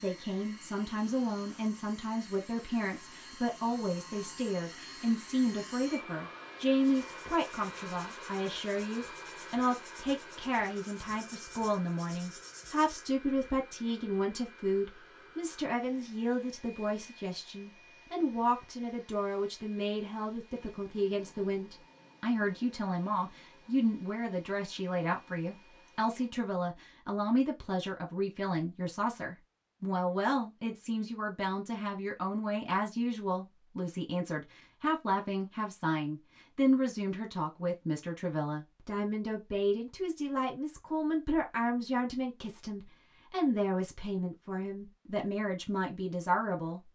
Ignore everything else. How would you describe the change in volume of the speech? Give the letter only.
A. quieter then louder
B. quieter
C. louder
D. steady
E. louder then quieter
D.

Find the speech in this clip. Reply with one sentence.
The speech can be heard from 0.0 to 46.9 s.